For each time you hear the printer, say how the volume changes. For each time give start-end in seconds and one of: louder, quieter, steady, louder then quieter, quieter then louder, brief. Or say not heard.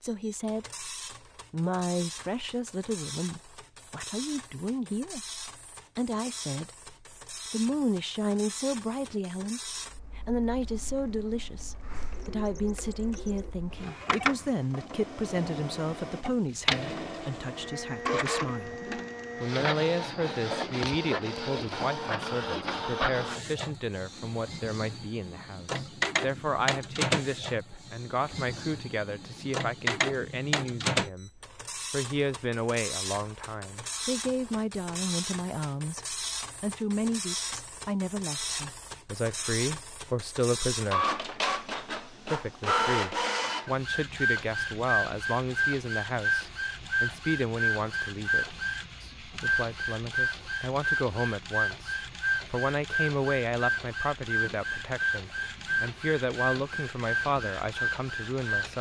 0.0-58.7 louder.